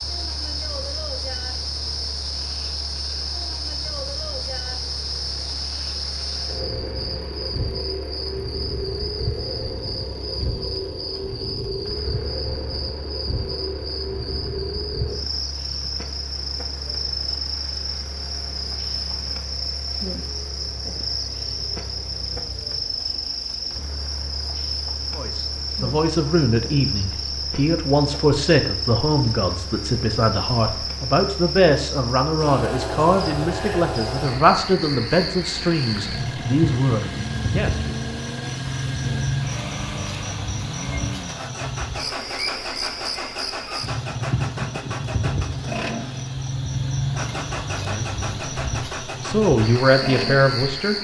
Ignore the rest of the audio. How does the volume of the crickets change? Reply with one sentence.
The volume of the crickets stays about the same.